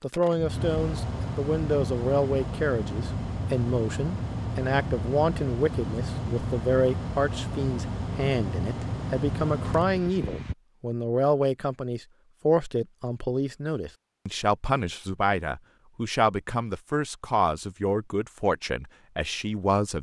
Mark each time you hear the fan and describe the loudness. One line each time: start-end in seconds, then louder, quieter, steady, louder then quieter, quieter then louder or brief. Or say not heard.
0.0-10.6 steady.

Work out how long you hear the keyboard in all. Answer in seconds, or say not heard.
not heard.